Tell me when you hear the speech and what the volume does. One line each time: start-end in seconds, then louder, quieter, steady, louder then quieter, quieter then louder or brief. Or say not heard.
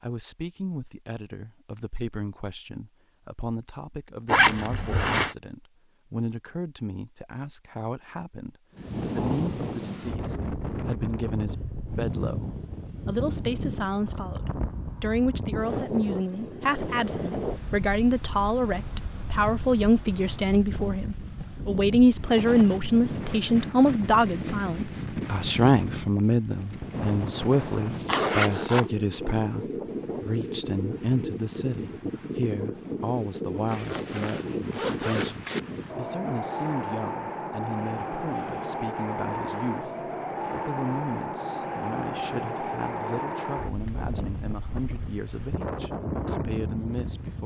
0.0-47.4 louder then quieter.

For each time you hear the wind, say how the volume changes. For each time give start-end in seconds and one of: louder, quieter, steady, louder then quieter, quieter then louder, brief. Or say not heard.
8.8-47.4 steady.